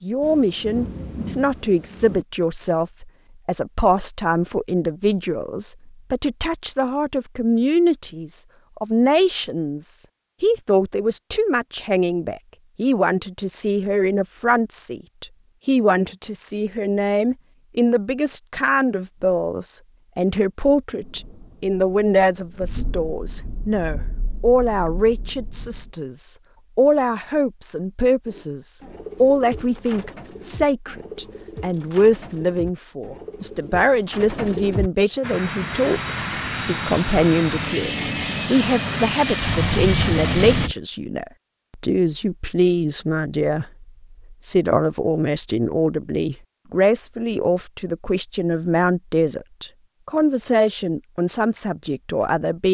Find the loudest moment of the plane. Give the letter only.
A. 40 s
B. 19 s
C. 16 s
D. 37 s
A.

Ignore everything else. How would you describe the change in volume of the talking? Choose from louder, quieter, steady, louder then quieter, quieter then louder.
steady.